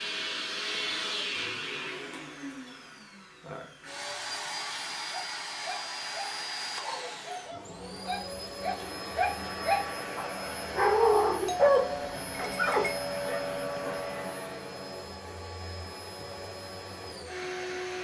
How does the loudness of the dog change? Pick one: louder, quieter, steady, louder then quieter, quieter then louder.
louder then quieter.